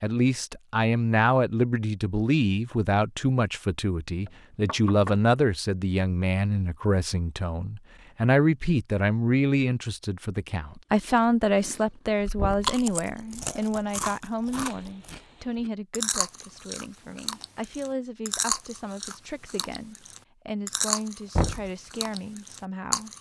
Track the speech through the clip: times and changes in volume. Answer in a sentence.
The speech can be heard from 0.0 to 23.1 s, getting quieter.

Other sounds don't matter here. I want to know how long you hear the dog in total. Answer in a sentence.
The dog can't be heard in this clip.